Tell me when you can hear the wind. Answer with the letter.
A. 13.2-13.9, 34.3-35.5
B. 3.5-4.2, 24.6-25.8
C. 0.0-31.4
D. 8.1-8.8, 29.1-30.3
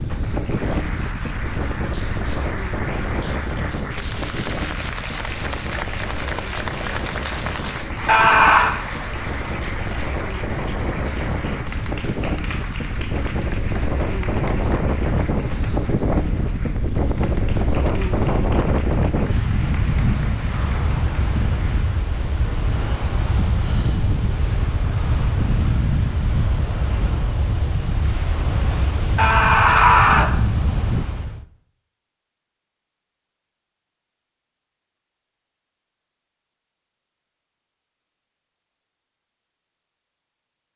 C.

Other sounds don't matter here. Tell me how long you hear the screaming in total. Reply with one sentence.
The screaming can be heard for 2 seconds in total.